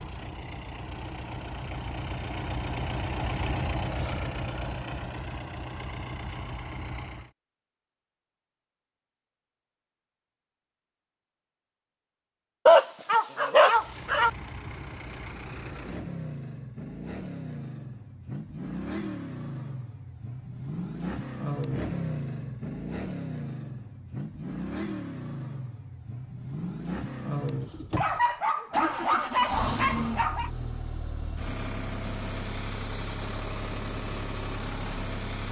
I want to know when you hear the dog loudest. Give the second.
13 s.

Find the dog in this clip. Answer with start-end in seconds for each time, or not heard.
12.7-14.3, 27.9-30.5.